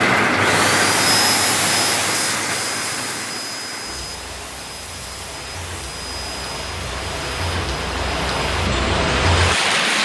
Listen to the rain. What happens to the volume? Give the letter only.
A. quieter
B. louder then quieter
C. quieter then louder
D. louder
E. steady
C.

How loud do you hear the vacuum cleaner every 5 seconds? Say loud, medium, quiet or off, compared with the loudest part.
loud, medium.